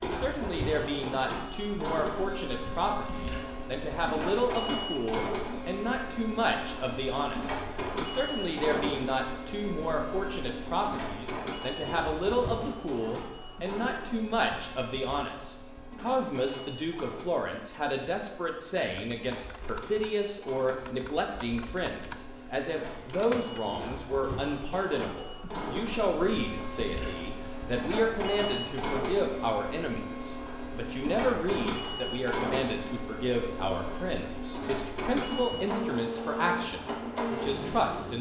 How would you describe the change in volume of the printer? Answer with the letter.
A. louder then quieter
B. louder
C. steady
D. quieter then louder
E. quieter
D.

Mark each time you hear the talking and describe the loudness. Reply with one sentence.
The talking can be heard from 0.0 to 38.1 s, at a steady volume.